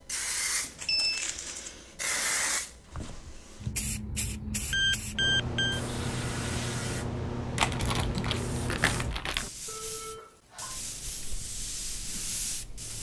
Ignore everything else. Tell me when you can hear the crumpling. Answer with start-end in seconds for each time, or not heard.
0.8-1.8, 7.5-9.5.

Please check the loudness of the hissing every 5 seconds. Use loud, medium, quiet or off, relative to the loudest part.
loud, loud, medium.